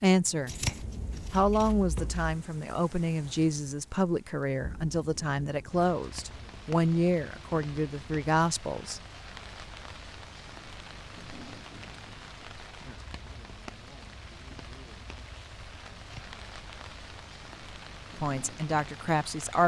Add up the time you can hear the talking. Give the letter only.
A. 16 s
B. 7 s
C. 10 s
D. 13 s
C.